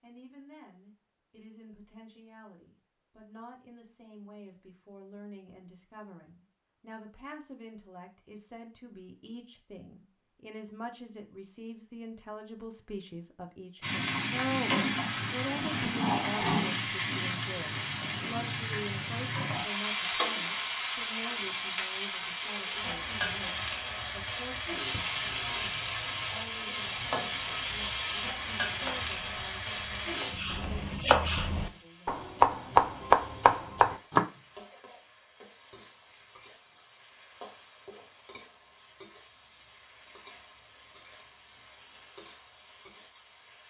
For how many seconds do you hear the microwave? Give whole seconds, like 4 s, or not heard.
not heard.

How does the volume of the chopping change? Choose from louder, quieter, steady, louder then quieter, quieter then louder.
louder.